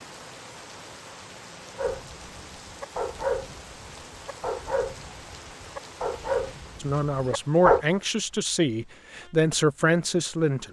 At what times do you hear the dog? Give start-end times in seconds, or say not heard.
1.8-7.8.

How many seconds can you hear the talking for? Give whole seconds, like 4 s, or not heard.
4 s.